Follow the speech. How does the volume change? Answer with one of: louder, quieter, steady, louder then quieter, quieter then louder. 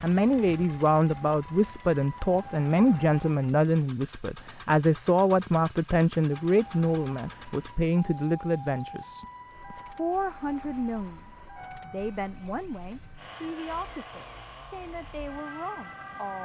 quieter.